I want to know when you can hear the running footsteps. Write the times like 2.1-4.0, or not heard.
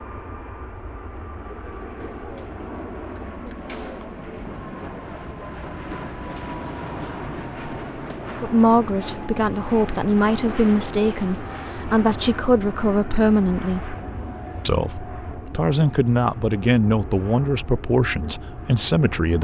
1.8-8.2.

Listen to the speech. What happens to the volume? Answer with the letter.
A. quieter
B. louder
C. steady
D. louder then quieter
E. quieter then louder
C.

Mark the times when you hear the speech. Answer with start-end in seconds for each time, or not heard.
8.4-13.9, 14.7-19.3.